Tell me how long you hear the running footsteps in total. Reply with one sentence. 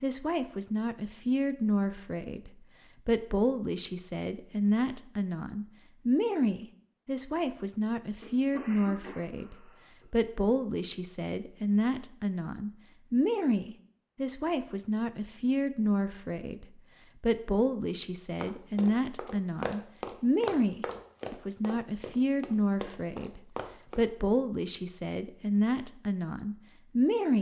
You can hear the running footsteps for 6 seconds altogether.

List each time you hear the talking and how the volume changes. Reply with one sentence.
You can hear the talking from 0.0 to 27.3 s, at a steady volume.